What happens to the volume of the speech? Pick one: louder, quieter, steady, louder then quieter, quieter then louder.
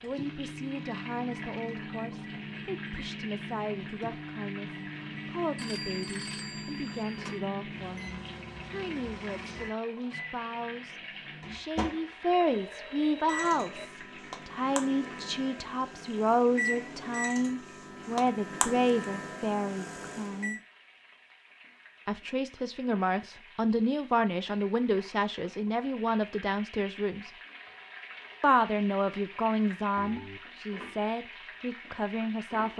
louder.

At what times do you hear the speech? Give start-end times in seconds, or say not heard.
0.0-20.6, 22.1-27.3, 28.4-32.7.